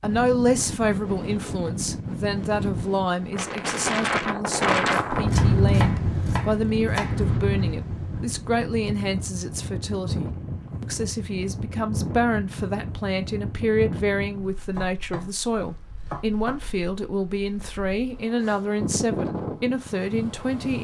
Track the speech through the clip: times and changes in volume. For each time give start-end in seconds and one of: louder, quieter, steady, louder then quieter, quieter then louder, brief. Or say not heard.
0.0-20.7 steady.